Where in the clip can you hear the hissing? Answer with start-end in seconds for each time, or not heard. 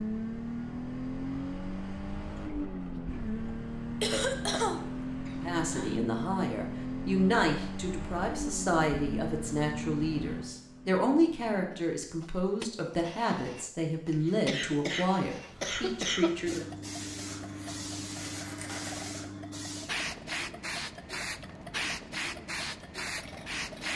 16.4-23.9.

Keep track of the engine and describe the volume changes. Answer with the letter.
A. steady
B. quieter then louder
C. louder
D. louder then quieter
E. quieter
E.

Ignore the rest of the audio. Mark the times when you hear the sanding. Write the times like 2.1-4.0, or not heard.
17.2-19.1.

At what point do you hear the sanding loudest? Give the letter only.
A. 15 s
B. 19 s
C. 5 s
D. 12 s
B.